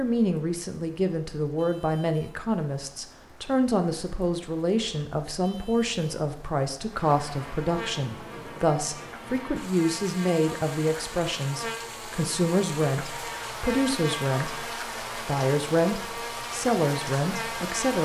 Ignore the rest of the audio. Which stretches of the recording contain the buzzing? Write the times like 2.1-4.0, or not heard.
6.8-18.0.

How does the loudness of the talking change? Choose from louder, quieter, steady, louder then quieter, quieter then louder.
steady.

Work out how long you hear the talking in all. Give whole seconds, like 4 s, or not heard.
18 s.